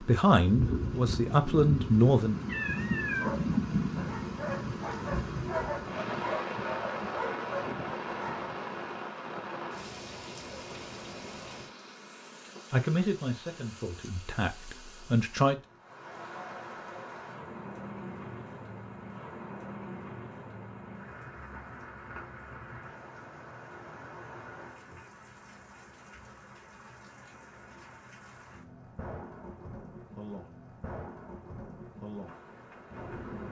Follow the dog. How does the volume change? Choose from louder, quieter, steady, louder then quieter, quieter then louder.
louder.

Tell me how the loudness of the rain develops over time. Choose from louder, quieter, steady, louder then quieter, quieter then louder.
quieter.